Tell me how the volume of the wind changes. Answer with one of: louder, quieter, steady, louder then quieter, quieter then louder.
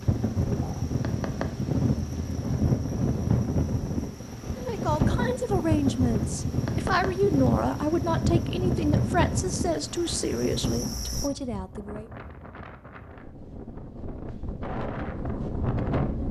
quieter.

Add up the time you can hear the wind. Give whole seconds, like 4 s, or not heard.
16 s.